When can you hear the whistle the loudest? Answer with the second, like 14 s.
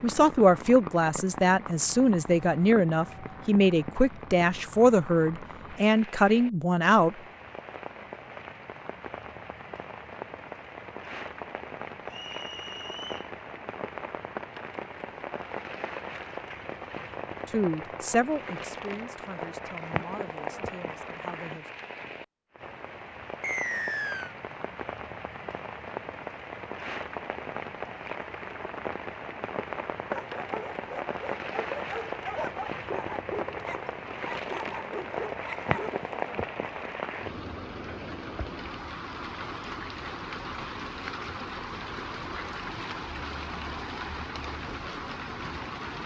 24 s.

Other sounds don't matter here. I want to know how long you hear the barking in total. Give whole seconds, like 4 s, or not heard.
6 s.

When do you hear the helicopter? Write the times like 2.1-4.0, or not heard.
not heard.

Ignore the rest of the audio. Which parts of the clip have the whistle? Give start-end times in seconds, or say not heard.
12.1-13.3, 23.4-24.4.